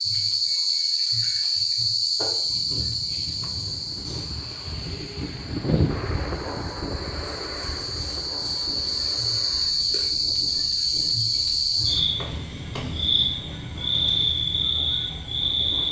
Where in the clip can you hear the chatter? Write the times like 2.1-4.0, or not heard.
not heard.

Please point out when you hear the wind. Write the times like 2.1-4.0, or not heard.
2.4-15.8.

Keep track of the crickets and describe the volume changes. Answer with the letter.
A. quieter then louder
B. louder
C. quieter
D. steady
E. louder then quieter
A.